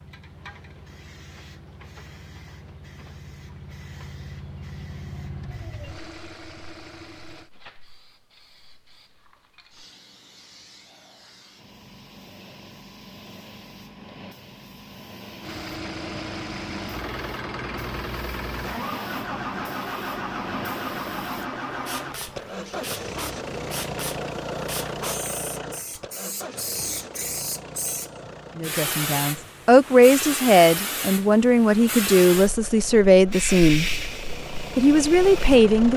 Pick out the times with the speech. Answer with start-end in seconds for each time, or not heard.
28.6-33.9, 34.6-35.9.